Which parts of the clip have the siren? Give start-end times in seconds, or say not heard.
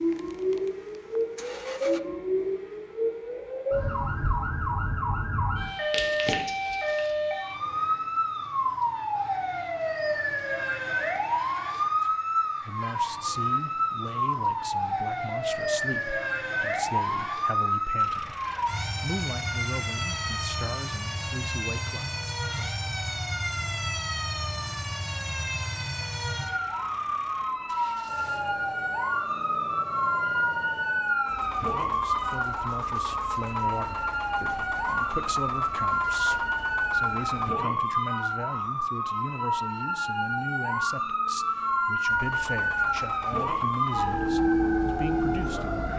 0.0-45.9.